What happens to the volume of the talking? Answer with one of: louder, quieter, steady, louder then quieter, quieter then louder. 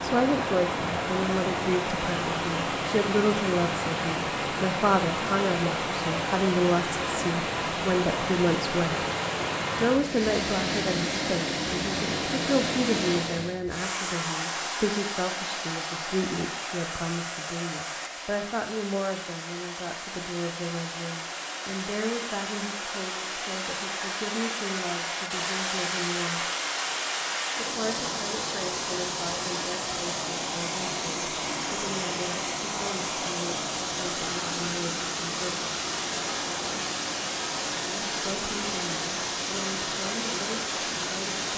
quieter.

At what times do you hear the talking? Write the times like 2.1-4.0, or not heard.
0.0-9.1, 9.8-26.5, 27.6-35.7, 37.9-41.5.